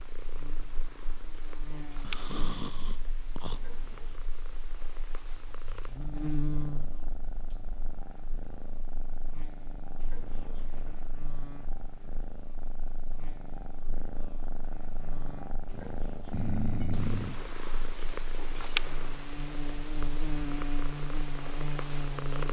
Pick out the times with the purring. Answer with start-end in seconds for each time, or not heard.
0.0-22.4.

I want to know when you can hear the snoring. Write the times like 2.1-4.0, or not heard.
2.0-3.6, 16.3-18.2.